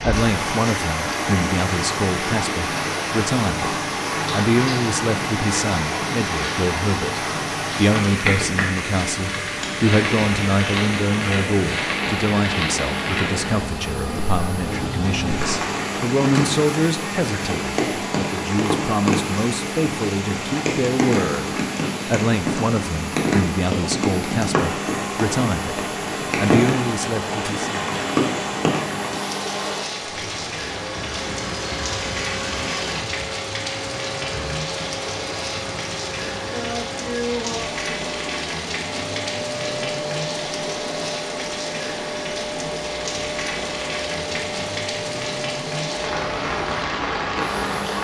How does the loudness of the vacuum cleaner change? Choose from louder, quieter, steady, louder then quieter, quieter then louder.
steady.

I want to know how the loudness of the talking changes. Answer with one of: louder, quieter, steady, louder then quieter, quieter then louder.
steady.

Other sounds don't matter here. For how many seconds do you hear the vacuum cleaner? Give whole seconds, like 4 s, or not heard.
48 s.